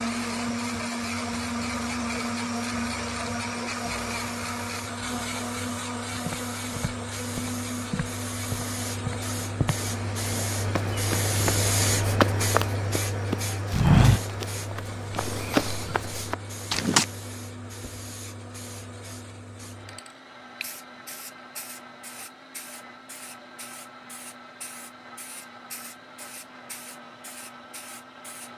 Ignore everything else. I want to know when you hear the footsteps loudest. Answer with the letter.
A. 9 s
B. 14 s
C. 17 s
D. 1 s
B.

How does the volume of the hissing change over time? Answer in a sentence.
The loudness of the hissing goes up, then down.